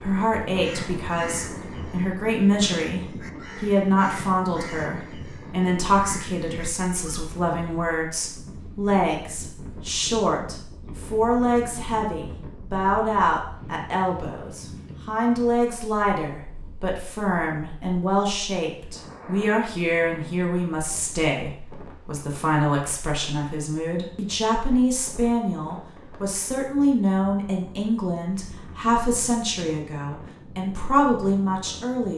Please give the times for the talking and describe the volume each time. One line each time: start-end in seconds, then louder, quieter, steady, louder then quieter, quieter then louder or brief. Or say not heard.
0.0-32.1 steady.